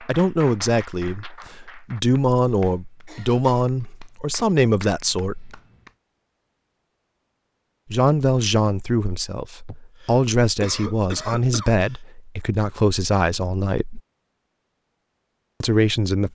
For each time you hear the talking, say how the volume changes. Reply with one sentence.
You can hear the talking from 0.0 to 5.5 s, at a steady volume; from 7.9 to 14.0 s, at a steady volume; and briefly from 15.6 to 16.3 s.